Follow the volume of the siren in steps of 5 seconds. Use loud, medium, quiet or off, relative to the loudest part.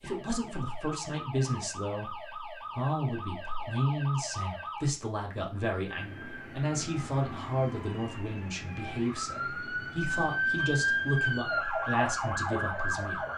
medium, medium, loud.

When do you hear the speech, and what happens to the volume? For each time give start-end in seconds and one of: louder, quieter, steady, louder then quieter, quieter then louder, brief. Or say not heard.
0.0-13.2 steady.